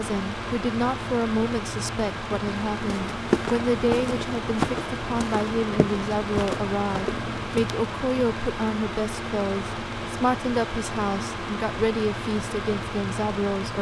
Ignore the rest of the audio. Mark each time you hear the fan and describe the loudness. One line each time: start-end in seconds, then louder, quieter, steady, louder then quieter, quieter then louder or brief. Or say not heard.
0.0-13.7 steady.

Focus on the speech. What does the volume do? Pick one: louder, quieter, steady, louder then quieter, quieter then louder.
steady.